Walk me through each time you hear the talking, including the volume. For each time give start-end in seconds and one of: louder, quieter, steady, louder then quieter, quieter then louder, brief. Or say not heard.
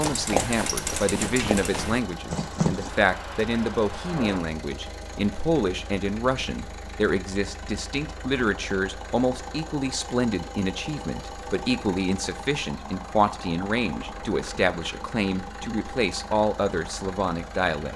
0.0-17.9 steady.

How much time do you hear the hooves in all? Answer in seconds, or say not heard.
3 s.